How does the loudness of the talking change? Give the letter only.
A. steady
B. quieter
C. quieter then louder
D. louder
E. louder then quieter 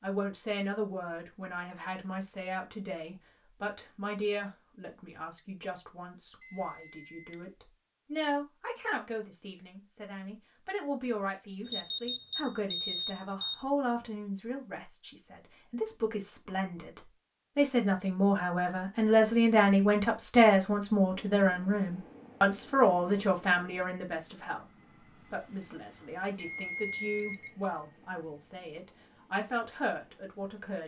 E.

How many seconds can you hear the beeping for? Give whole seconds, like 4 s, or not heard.
4 s.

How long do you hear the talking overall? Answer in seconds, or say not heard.
30 s.